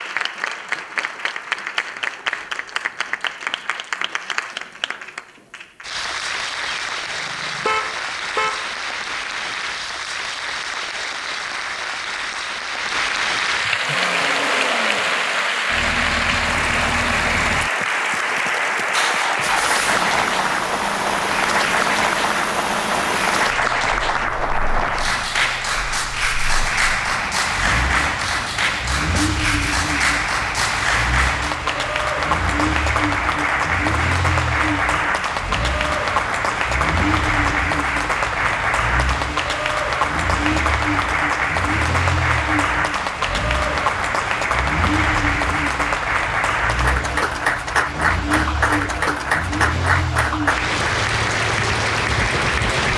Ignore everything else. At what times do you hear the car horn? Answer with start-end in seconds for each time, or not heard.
6.8-8.7.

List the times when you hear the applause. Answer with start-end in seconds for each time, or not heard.
0.0-52.9.